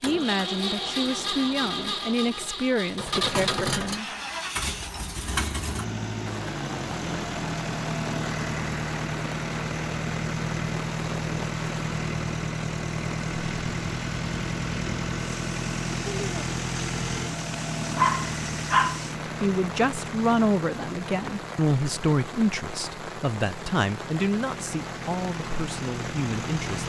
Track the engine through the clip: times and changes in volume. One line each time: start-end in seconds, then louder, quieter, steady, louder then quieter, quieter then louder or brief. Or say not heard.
0.0-26.8 quieter.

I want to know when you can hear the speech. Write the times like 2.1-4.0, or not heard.
0.0-4.1, 19.2-26.8.